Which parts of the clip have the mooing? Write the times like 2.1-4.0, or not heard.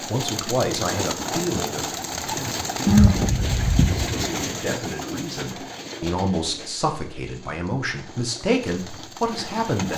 2.9-4.2.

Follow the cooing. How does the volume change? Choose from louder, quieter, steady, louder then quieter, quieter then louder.
quieter.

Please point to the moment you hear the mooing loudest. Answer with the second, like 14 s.
3 s.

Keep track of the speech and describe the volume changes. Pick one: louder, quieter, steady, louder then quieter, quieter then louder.
quieter then louder.